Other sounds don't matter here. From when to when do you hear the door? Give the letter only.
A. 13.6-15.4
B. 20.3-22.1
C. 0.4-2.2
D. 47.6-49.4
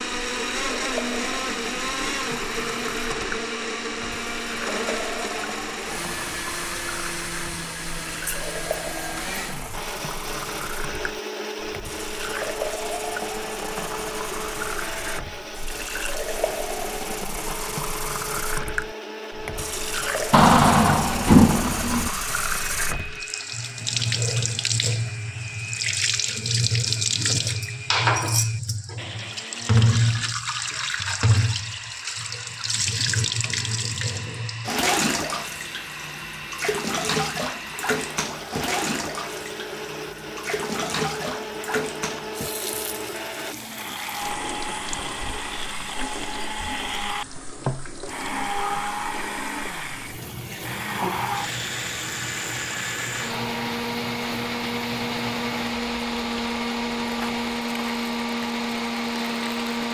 B.